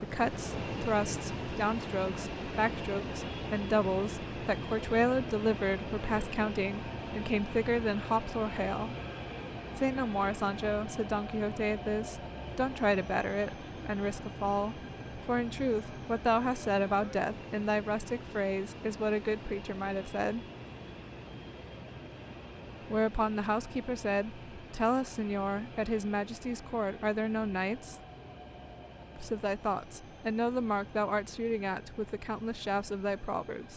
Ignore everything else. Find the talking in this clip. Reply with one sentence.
You can hear the talking from 0.0 to 8.9 s, from 9.8 to 20.4 s, from 22.9 to 27.9 s and from 29.1 to 33.7 s.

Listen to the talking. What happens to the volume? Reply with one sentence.
The volume of the talking stays about the same.